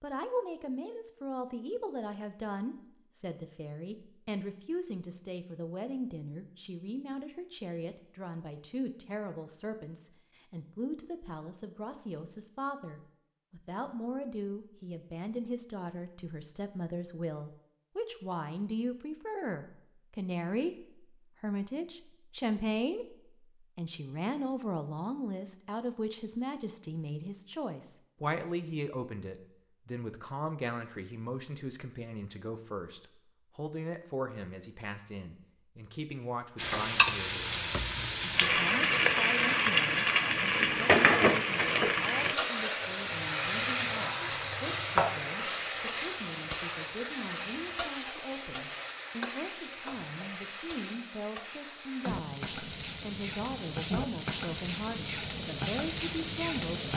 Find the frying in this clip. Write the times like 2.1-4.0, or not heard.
36.5-56.9.